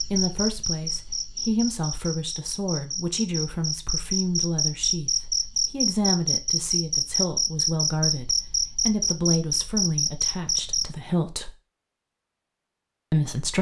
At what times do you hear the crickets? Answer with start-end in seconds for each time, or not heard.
0.0-10.8.